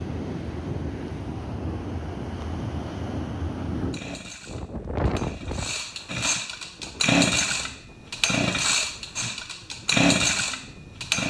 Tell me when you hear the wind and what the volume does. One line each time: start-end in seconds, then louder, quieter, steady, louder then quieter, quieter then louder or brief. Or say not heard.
0.0-11.2 quieter.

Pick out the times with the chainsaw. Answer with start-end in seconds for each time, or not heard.
3.9-11.2.